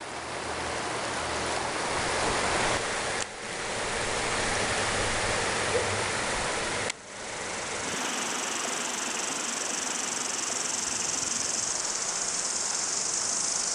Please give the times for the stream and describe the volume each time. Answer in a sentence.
The stream can be heard from 0.0 to 13.7 s, getting quieter.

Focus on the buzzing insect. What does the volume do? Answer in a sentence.
The loudness of the buzzing insect goes up.